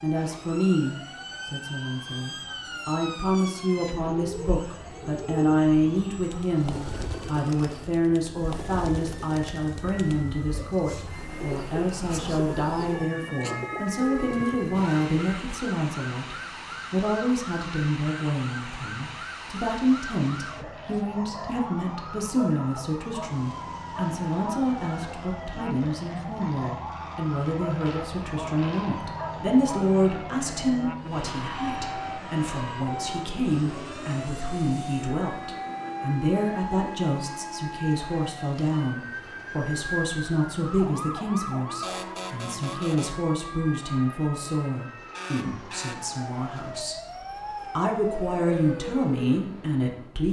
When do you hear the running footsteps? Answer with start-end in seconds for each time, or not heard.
not heard.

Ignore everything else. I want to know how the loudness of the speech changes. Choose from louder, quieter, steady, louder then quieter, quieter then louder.
steady.